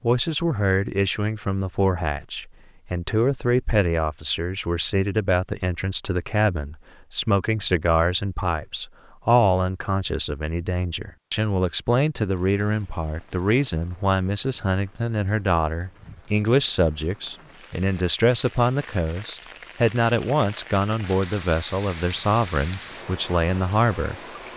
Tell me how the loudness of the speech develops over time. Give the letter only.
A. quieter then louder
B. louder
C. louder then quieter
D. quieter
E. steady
E.